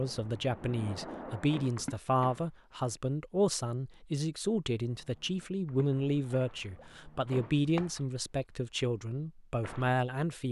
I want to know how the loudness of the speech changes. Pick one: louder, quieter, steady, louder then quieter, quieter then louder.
steady.